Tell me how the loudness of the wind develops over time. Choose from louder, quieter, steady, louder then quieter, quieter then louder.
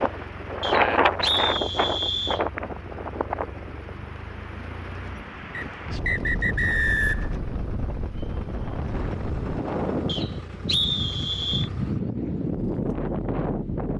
quieter then louder.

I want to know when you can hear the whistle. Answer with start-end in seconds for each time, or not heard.
0.6-2.5, 5.5-7.3, 10.1-11.7.